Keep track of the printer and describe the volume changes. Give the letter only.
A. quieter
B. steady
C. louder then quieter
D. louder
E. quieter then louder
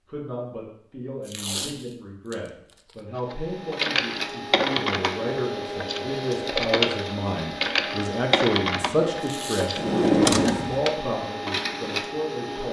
B.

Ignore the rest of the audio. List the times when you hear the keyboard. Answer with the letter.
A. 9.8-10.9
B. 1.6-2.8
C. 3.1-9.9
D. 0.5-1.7
C.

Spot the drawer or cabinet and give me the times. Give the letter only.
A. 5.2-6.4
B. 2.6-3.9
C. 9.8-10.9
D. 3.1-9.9
C.